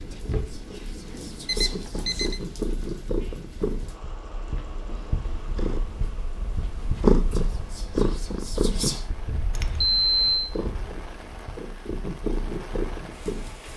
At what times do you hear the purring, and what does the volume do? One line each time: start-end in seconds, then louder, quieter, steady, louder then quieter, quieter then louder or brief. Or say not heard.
0.0-13.7 louder then quieter.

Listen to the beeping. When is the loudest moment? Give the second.
10 s.